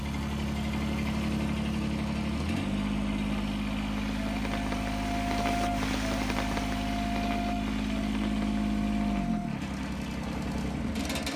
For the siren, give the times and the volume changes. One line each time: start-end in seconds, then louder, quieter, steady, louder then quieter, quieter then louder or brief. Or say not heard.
not heard.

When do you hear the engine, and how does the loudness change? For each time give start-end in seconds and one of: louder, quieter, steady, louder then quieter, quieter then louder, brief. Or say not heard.
0.0-11.3 steady.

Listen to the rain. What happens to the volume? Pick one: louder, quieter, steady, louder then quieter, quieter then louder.
louder then quieter.